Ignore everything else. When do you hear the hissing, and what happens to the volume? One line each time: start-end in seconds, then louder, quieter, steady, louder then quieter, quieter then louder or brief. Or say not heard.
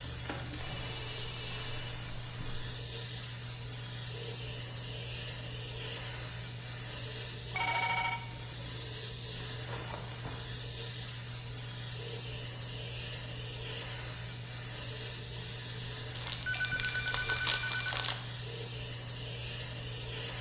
0.0-20.3 steady.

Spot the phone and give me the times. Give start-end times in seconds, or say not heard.
0.6-2.8, 7.5-8.2, 16.4-17.9.